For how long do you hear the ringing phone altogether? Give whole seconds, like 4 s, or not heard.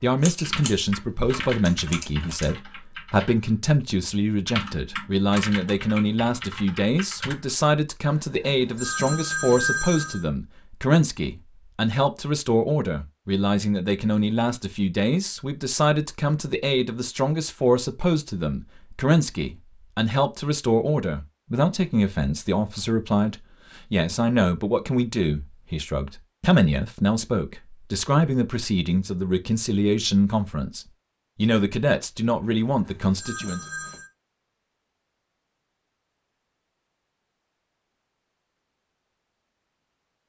4 s.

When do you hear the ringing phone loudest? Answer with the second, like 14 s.
10 s.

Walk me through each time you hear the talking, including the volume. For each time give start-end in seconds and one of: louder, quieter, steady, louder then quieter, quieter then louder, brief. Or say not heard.
0.0-33.6 steady.